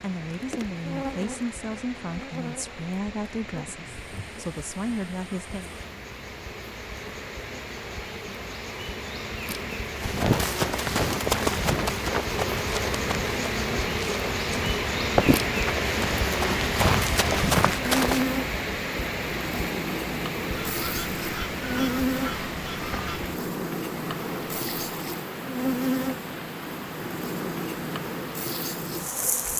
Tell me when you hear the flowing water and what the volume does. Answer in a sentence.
The flowing water can be heard from 0.0 to 29.5 s, getting louder then quieter.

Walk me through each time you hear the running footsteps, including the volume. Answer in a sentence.
You can hear the running footsteps from 10.0 to 18.2 s, getting quieter then louder.